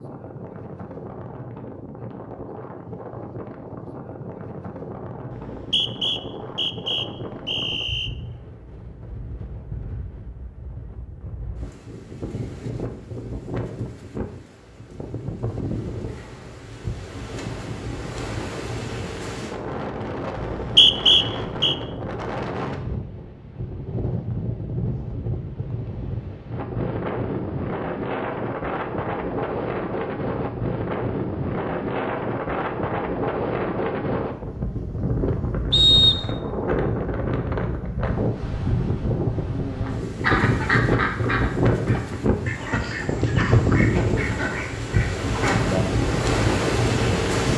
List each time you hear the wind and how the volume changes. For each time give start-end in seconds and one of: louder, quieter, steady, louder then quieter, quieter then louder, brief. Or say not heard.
0.0-47.5 louder.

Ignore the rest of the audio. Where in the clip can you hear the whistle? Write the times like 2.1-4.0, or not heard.
5.3-8.1, 20.4-21.8, 35.7-36.4.